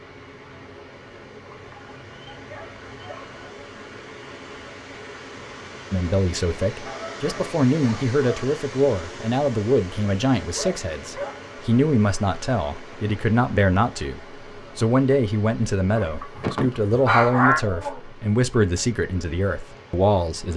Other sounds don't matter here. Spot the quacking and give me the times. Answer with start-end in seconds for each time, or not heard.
15.9-17.6.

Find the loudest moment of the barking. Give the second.
17 s.